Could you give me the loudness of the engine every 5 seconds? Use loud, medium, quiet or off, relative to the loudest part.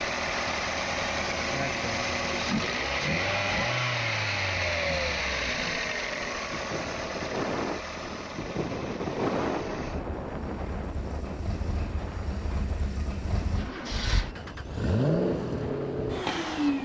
loud, medium, medium, loud.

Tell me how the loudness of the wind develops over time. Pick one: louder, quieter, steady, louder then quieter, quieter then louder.
louder then quieter.